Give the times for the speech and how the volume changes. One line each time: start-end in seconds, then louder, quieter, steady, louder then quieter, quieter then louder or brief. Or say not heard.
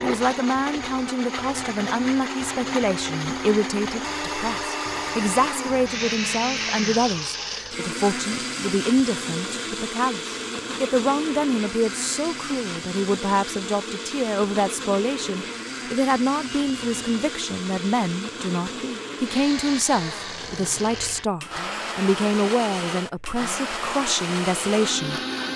0.0-25.2 steady.